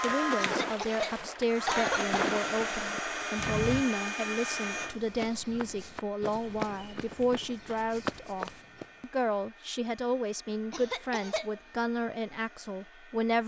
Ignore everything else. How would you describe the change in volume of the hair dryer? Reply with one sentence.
The loudness of the hair dryer goes down.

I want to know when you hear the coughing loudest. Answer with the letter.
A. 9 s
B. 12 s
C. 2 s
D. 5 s
C.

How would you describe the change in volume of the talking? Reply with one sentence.
The volume of the talking stays about the same.